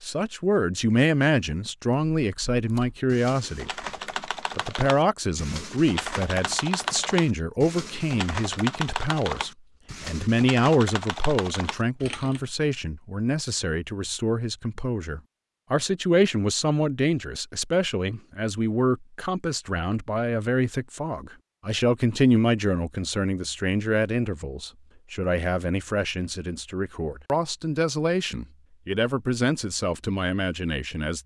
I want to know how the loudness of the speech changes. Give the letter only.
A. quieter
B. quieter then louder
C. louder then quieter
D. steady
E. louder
D.